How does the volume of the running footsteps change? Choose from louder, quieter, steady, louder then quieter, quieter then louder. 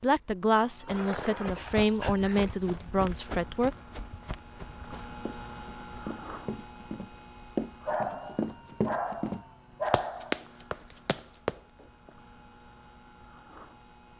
quieter then louder.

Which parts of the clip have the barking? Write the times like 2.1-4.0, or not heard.
0.8-2.5, 7.8-10.4.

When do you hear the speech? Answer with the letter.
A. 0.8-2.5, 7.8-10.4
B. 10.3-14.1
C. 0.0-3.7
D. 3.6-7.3
C.